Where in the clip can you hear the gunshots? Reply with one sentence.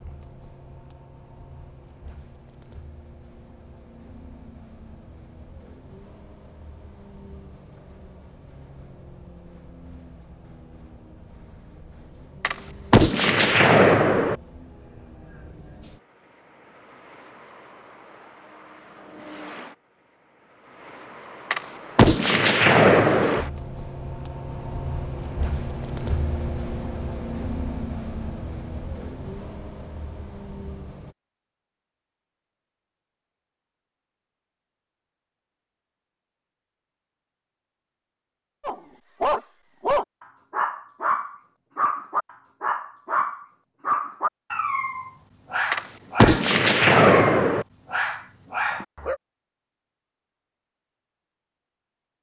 You can hear the gunshots from 12.4 to 14.3 s, from 21.5 to 23.4 s and from 45.7 to 47.6 s.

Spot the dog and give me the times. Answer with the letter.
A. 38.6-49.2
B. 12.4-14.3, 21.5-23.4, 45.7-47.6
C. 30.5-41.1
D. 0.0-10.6
A.